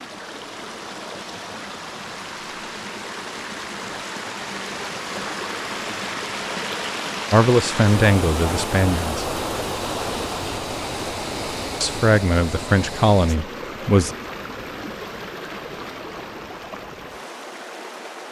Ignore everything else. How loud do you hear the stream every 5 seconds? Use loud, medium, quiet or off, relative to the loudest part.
medium, loud, loud, medium.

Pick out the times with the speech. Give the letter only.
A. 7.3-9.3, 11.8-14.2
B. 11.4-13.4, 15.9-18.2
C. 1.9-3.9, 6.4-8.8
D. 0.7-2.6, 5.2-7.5
A.